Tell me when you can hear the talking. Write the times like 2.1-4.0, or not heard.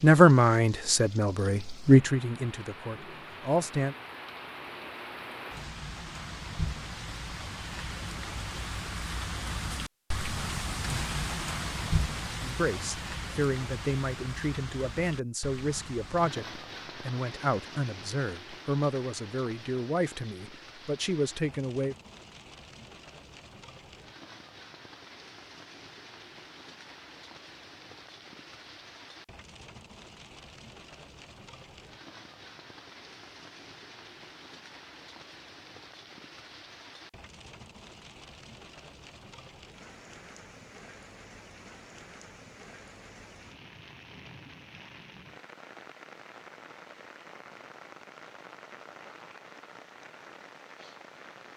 0.0-4.0, 12.4-21.9.